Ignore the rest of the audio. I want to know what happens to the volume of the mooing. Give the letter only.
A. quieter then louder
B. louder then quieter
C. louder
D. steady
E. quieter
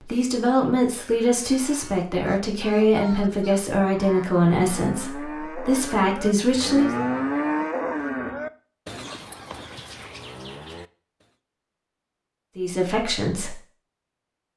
B.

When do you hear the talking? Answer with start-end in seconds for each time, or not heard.
0.0-6.9, 12.6-13.6.